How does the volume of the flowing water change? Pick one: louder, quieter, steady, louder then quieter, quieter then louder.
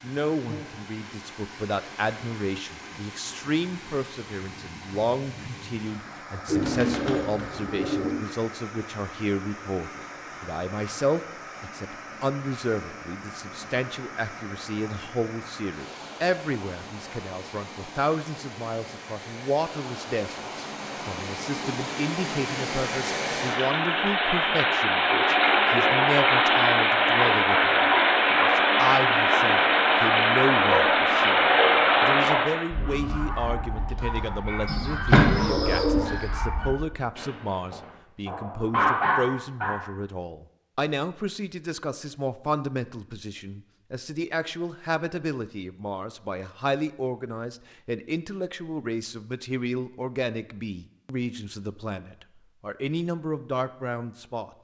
louder.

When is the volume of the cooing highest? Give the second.
35 s.